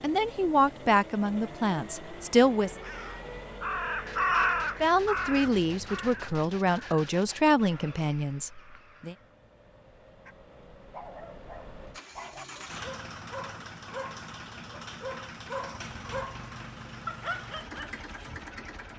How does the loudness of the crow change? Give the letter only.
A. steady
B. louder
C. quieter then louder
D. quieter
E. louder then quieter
D.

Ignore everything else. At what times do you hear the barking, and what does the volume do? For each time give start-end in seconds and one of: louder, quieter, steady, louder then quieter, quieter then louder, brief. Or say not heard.
10.2-18.4 louder.